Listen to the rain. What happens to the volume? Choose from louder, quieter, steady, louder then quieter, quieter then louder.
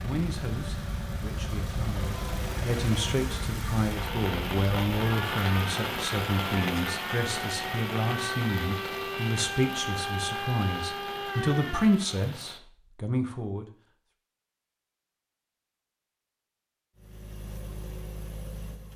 louder then quieter.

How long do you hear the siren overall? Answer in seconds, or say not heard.
12 s.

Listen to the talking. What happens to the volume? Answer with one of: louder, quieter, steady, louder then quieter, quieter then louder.
louder.